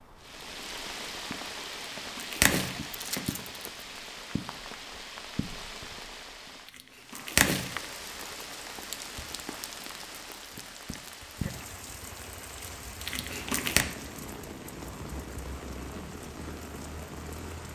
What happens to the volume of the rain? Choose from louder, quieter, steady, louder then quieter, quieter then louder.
steady.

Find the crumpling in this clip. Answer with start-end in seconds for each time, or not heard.
1.8-3.7, 6.8-7.8, 13.1-13.8.